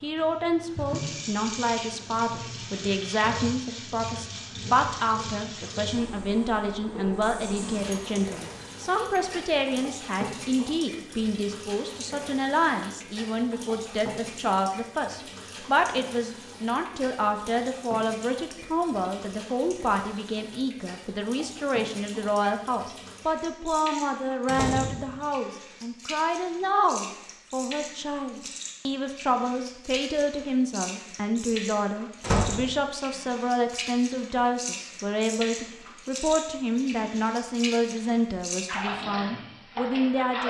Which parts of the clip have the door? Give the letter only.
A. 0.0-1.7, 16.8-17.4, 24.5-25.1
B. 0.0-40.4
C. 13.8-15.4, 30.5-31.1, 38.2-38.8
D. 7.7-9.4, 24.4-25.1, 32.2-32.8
D.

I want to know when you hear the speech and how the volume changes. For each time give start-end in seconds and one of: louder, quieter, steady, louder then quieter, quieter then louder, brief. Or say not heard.
0.0-40.4 steady.